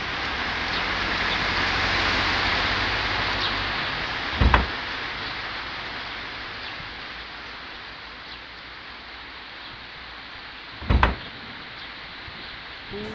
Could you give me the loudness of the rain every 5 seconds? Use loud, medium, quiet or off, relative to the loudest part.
loud, medium, quiet.